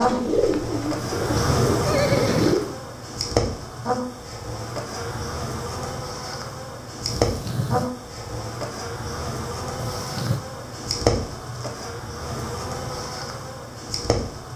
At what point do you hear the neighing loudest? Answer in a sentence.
The volume of the neighing peaks at 2 seconds.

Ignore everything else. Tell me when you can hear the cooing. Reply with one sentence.
You can hear the cooing from 0.0 to 2.8 s.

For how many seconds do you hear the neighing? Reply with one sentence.
You can hear the neighing for 3 seconds altogether.